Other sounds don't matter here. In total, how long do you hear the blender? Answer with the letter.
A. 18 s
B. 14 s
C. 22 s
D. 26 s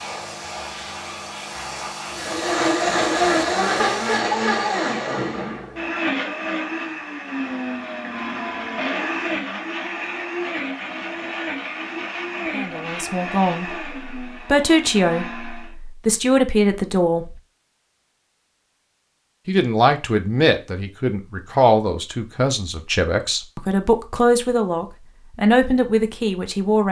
B.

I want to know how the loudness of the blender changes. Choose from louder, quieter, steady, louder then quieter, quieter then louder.
quieter.